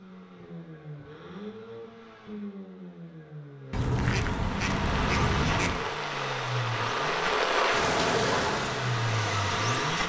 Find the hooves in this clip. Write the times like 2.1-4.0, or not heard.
not heard.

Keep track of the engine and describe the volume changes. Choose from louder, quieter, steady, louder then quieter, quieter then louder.
louder.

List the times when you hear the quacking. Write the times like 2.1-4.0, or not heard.
3.7-5.8.